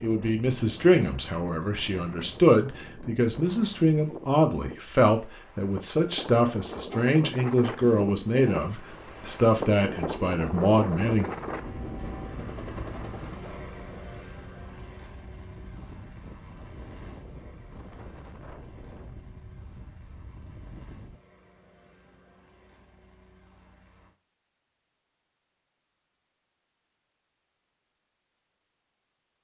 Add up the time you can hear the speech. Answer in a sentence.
You can hear the speech for 11 seconds altogether.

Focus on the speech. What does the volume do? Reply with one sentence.
The loudness of the speech stays about the same.